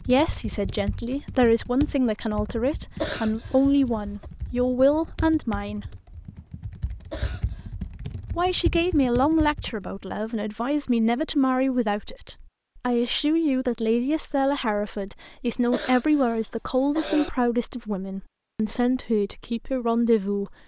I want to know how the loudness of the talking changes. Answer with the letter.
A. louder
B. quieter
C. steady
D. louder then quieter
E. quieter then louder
C.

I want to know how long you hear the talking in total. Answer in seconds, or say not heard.
18 s.